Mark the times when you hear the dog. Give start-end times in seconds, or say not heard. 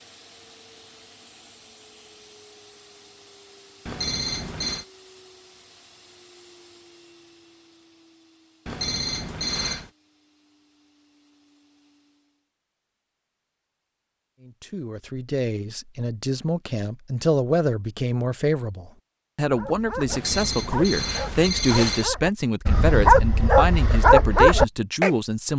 19.5-25.1.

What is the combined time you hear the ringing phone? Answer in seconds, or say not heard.
4 s.